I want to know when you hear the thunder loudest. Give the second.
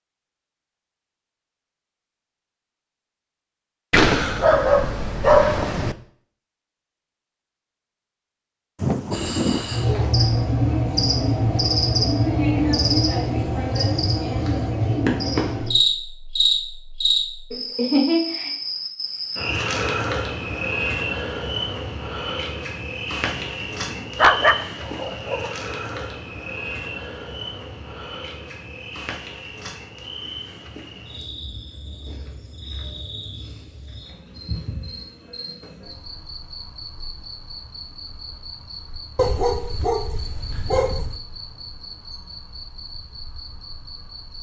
9 s.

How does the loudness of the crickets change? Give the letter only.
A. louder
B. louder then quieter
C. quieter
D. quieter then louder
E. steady
C.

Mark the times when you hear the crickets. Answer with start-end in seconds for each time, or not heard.
9.1-44.3.